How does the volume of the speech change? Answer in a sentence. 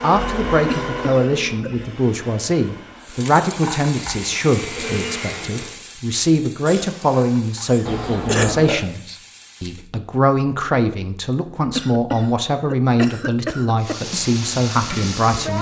The loudness of the speech stays about the same.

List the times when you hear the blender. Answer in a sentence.
You can hear the blender from 0.0 to 5.8 s.